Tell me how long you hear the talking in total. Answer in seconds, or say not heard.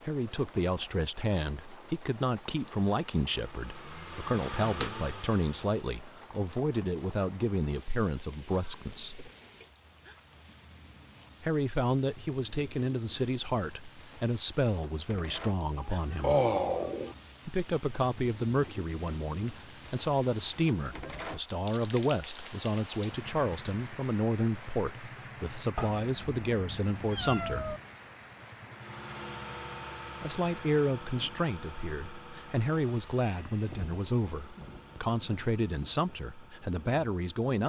32 s.